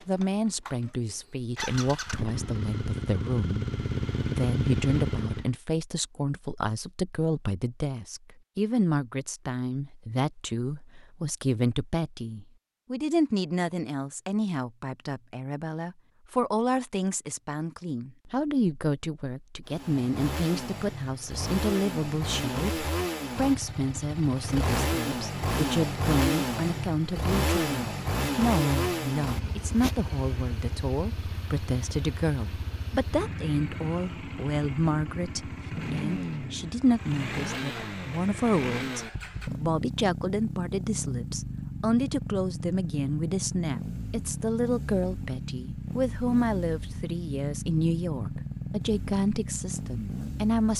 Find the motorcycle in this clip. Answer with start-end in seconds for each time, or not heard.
0.0-5.5, 19.6-50.7.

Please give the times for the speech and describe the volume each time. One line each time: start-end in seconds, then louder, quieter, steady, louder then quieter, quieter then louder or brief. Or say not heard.
0.1-50.7 steady.